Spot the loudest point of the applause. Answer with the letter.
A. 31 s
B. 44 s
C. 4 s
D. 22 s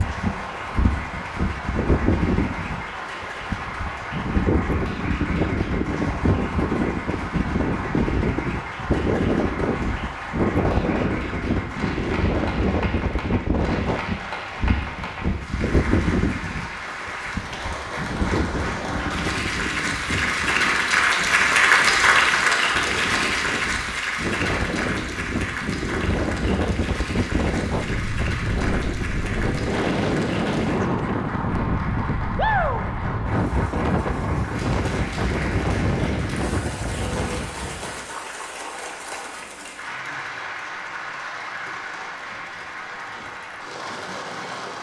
D.